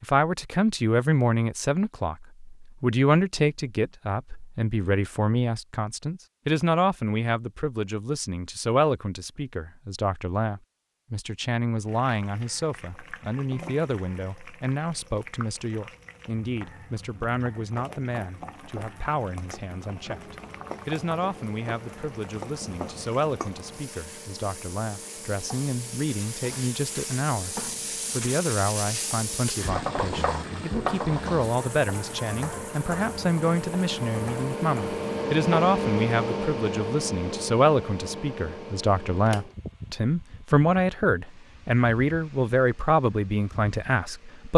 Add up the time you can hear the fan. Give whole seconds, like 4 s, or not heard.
25 s.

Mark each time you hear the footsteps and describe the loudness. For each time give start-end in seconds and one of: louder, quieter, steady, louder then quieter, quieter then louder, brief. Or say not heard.
not heard.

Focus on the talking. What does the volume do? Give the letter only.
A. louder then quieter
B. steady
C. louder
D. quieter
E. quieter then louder
E.